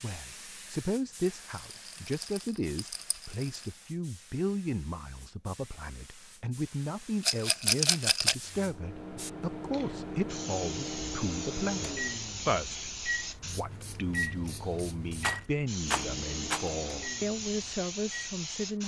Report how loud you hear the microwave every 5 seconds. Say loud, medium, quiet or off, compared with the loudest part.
off, loud, loud, loud.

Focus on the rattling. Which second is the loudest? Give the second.
8 s.